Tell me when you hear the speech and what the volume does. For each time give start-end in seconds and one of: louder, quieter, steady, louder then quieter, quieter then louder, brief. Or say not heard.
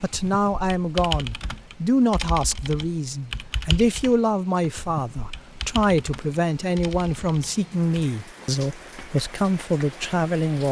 0.0-10.6 steady.